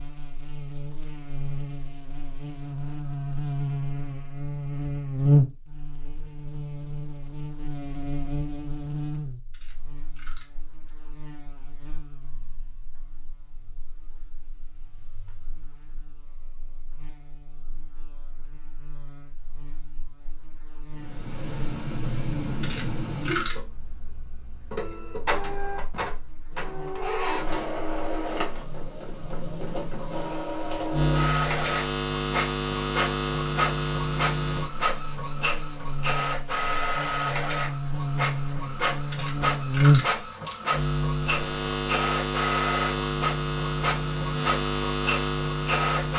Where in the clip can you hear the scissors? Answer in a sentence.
You can hear the scissors from 9.5 to 10.9 s, from 22.6 to 23.6 s and from 39.1 to 40.5 s.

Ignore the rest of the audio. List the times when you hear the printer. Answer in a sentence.
The printer can be heard from 20.9 to 46.1 s.